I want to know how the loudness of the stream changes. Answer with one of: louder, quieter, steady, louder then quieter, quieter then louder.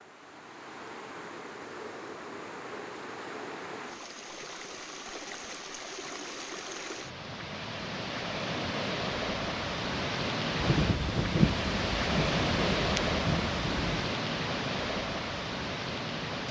louder.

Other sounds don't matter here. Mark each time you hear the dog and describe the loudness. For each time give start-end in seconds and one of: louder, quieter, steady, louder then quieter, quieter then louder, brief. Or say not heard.
not heard.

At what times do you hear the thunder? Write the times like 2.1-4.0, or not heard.
10.6-14.1.